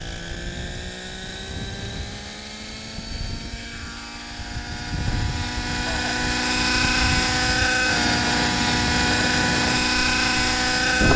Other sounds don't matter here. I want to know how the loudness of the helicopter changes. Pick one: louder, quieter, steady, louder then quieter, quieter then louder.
louder.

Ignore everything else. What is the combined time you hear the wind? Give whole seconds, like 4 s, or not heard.
11 s.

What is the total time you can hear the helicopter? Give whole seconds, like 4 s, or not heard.
11 s.